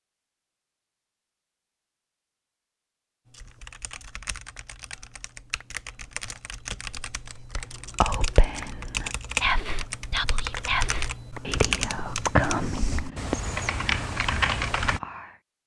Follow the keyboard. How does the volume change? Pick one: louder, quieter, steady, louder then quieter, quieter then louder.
louder.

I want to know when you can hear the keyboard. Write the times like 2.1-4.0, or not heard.
3.2-15.0.